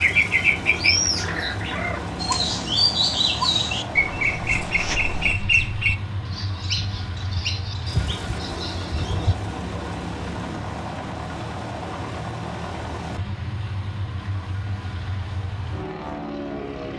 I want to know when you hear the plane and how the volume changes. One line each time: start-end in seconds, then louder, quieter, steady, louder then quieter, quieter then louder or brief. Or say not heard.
0.0-16.9 steady.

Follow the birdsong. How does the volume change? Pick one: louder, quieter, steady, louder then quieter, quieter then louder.
quieter.